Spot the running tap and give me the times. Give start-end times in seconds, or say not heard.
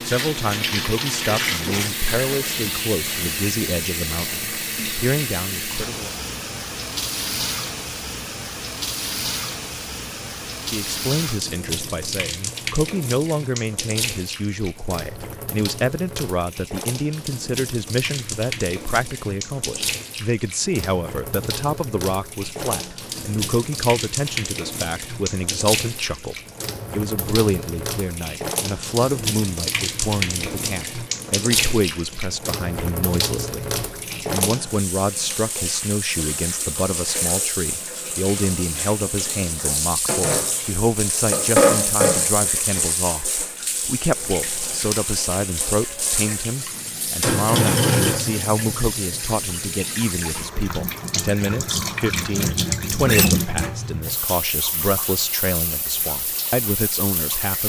0.0-57.6.